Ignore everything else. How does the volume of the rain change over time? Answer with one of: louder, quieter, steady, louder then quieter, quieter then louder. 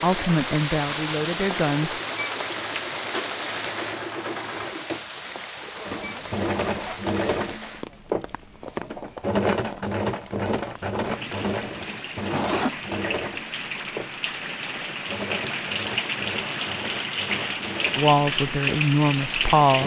quieter then louder.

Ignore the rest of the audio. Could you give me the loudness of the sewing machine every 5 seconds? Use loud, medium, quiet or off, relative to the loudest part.
medium, loud, loud, medium.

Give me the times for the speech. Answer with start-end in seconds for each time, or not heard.
0.0-2.0, 17.9-19.8.